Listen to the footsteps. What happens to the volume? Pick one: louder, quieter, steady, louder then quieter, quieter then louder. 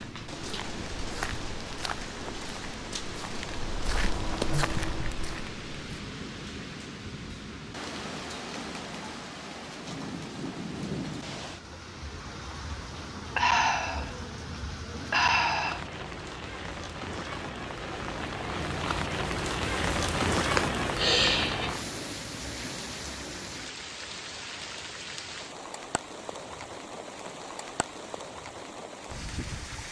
quieter then louder.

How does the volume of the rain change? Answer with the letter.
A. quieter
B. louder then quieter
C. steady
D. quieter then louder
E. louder
B.